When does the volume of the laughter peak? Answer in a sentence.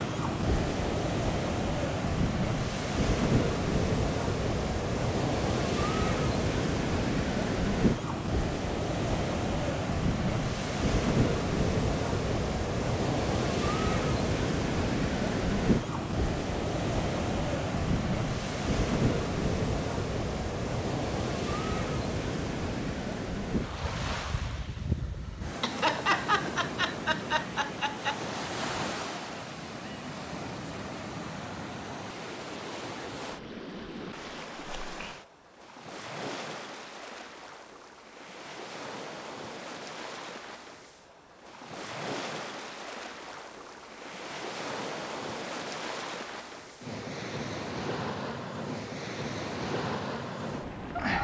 The volume of the laughter peaks at 26 seconds.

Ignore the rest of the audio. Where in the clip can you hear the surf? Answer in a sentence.
You can hear the surf from 0.0 to 51.1 s.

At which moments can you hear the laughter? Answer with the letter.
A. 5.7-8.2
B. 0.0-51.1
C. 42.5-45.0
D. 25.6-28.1
D.